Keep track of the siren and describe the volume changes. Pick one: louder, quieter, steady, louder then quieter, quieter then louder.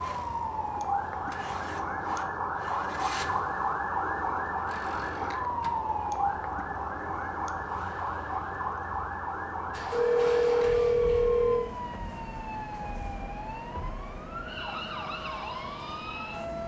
quieter.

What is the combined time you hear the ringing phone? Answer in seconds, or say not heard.
2 s.